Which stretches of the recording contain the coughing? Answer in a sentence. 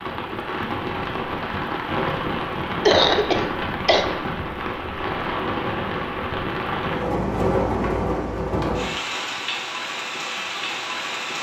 You can hear the coughing from 2.9 to 4.0 s.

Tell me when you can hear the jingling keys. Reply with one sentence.
The jingling keys can't be heard in this clip.